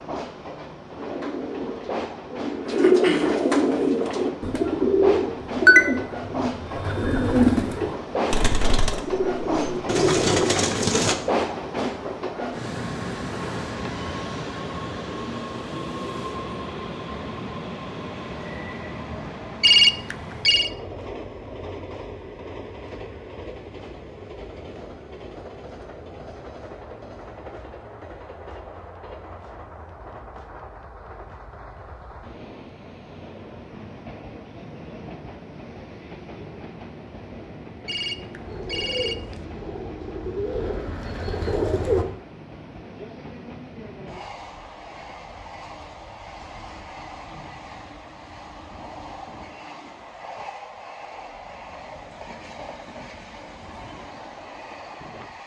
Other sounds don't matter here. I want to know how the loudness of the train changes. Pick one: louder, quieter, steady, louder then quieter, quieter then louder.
quieter.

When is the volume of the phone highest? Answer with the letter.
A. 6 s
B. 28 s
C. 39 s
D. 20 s
D.